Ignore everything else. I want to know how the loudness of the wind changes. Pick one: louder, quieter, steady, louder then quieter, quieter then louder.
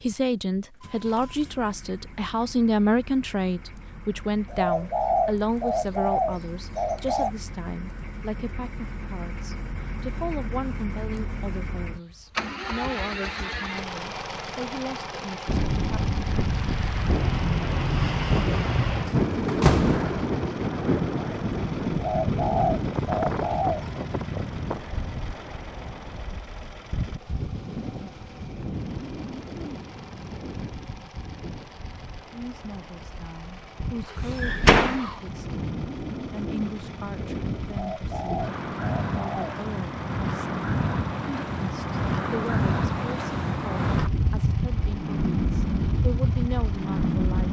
quieter then louder.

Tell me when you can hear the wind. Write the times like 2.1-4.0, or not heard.
15.4-47.4.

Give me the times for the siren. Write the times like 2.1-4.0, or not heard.
not heard.